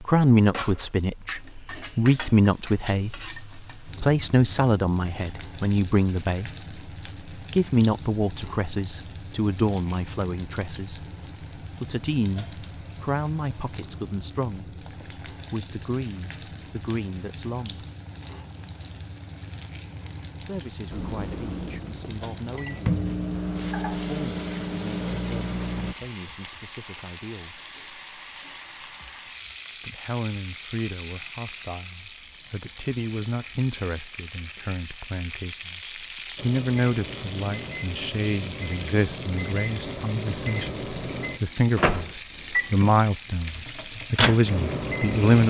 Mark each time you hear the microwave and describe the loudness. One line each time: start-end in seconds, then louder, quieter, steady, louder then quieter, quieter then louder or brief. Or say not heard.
20.9-25.9 louder
36.4-45.4 louder.